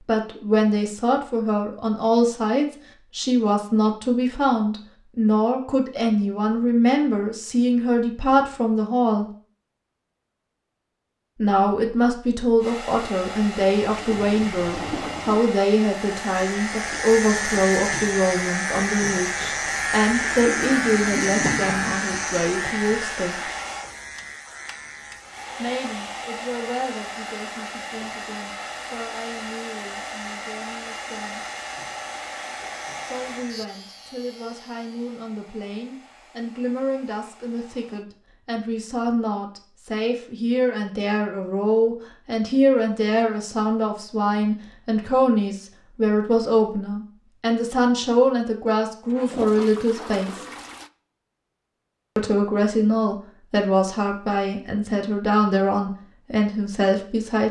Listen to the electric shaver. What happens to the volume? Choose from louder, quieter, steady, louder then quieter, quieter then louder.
quieter.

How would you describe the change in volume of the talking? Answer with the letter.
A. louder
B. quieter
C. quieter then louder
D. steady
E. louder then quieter
C.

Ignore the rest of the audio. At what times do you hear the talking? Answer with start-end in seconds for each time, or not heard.
0.1-9.2, 11.4-23.5, 25.6-31.4, 33.0-50.5, 52.1-57.4.